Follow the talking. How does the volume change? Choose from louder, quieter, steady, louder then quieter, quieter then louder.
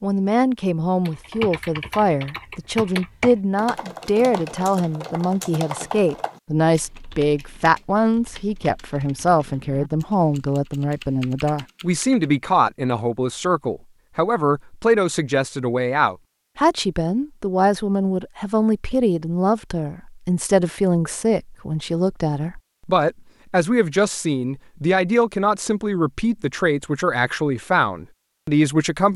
steady.